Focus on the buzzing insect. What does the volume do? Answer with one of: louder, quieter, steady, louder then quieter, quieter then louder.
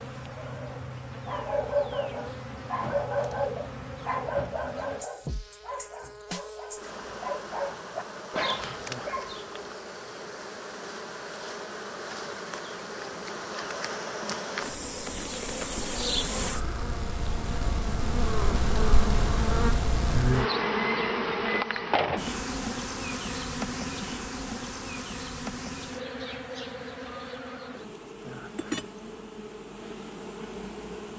louder then quieter.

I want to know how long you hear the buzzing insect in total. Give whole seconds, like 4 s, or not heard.
31 s.